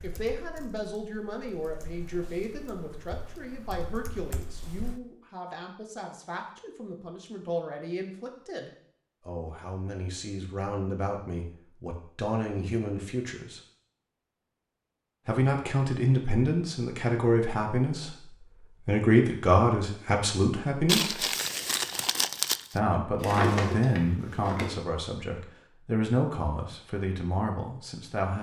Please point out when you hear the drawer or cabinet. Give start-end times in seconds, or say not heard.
23.2-24.8.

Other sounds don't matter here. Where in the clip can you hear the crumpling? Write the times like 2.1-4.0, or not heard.
20.9-22.8.